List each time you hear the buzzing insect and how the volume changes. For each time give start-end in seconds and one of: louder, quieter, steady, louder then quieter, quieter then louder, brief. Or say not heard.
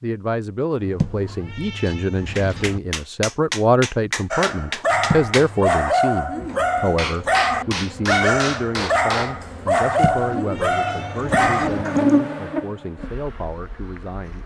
6.3-14.4 louder then quieter.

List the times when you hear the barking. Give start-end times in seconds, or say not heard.
4.3-12.0.